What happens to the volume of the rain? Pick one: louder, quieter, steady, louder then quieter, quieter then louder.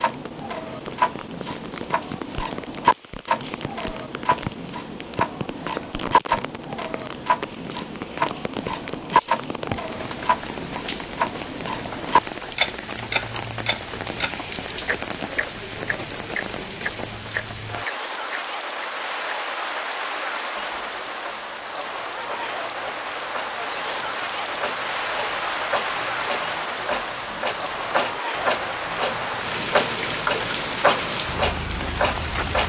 louder.